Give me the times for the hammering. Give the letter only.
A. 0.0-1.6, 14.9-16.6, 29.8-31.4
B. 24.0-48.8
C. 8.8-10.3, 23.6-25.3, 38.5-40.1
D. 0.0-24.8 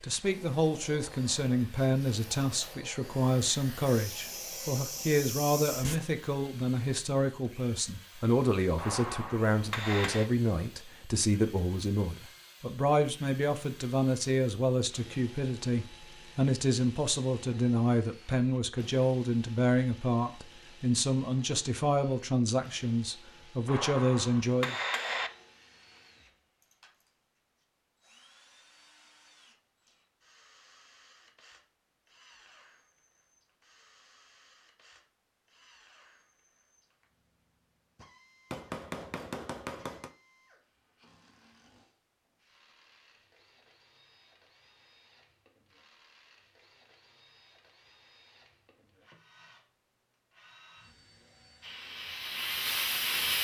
C.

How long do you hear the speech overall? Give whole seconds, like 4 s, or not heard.
25 s.